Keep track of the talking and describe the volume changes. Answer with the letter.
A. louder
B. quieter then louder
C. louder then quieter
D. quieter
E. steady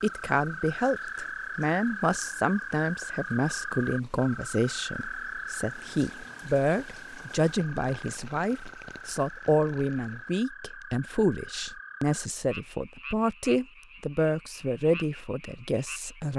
E.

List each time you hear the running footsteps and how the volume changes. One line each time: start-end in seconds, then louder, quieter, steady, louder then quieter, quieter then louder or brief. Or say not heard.
not heard.